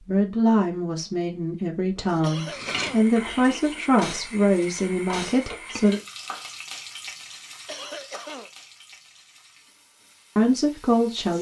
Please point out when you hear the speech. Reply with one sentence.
You can hear the speech from 0.0 to 6.0 s and from 10.3 to 11.3 s.